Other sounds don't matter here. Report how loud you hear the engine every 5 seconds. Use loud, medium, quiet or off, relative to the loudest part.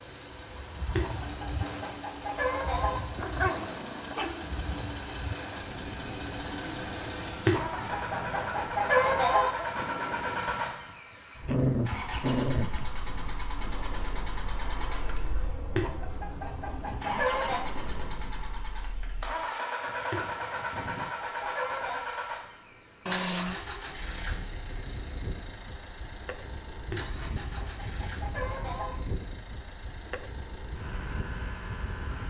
medium, loud, loud, loud, loud, medium, medium.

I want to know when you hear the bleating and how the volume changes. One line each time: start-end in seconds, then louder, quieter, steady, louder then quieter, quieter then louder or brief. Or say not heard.
not heard.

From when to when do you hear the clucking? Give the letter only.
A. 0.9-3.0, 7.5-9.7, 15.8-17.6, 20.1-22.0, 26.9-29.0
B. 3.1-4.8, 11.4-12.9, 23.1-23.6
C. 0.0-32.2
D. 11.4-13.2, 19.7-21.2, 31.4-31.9
A.